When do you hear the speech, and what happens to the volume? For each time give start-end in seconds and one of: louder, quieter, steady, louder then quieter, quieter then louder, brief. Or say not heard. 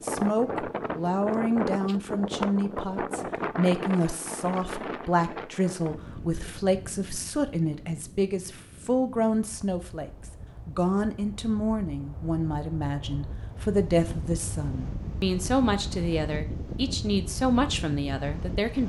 0.0-18.8 steady.